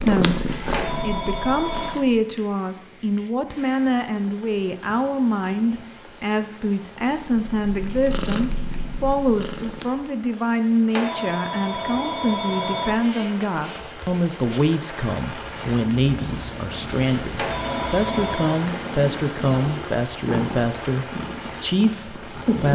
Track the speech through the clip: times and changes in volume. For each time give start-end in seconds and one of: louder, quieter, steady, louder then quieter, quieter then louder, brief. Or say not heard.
0.0-22.6 steady.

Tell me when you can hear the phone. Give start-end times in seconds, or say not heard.
0.7-2.0, 10.9-12.9, 17.4-18.6.